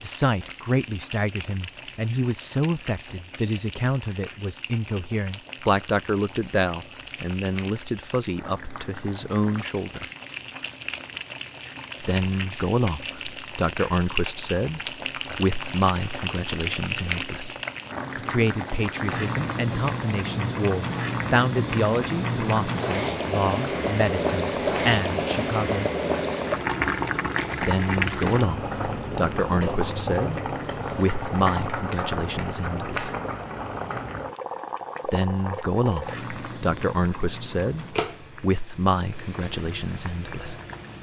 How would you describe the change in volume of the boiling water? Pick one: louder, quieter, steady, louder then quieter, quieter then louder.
louder then quieter.